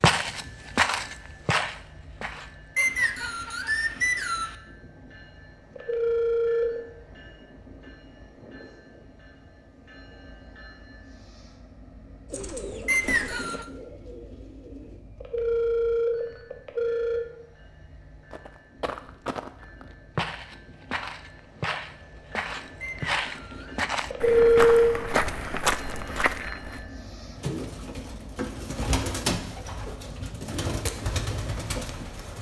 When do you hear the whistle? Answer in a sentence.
You can hear the whistle from 2.8 to 4.5 s, from 12.8 to 13.7 s and from 22.8 to 23.8 s.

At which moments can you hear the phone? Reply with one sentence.
You can hear the phone from 5.8 to 6.8 s, from 15.2 to 17.2 s and from 24.1 to 24.9 s.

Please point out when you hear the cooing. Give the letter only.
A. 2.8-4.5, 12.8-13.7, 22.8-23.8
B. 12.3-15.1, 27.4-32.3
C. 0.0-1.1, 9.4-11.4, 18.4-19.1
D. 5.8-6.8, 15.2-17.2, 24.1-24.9
B.